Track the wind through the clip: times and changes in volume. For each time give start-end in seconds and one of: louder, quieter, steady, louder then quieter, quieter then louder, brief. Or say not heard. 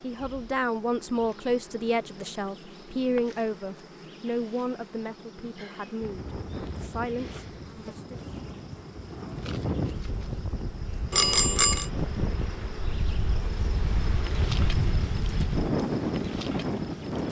6.0-17.2 louder.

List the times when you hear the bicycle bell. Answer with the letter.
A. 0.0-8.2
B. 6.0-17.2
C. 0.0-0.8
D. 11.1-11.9
D.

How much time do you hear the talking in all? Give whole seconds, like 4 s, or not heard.
8 s.